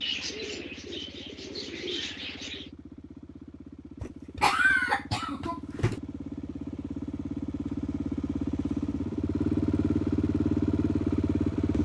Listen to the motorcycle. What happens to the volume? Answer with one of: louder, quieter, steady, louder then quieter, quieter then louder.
louder.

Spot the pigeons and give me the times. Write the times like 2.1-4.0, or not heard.
0.0-2.7.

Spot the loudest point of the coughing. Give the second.
5 s.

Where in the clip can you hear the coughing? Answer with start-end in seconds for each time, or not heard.
4.0-6.0.